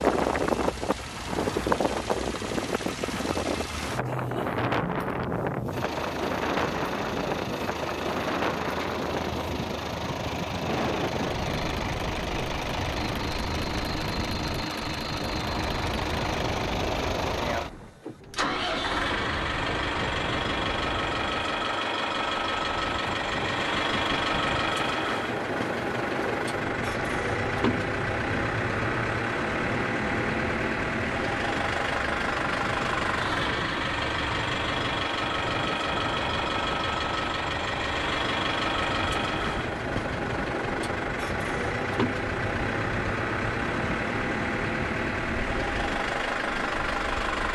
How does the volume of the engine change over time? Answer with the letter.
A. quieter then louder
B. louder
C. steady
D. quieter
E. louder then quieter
B.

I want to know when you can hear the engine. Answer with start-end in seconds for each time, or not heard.
0.0-47.5.